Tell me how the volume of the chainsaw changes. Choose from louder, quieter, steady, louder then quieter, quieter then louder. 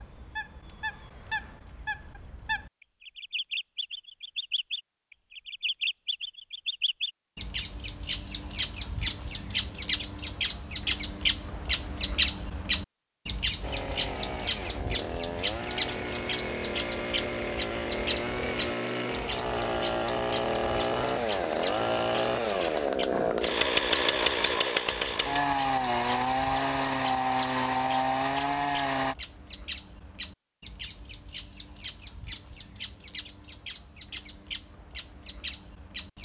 louder.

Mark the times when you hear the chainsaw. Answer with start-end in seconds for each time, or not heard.
13.6-29.1.